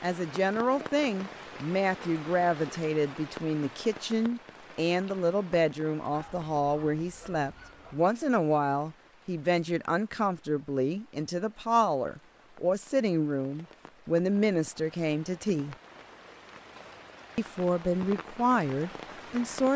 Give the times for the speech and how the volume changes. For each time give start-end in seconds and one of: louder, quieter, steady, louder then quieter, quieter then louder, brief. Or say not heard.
0.0-15.8 steady
17.4-19.7 brief.